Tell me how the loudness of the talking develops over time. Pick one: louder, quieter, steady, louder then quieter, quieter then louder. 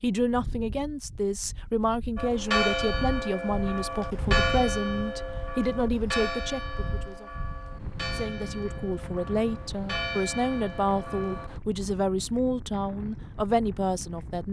steady.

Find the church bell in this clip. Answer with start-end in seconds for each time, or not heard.
2.1-11.6.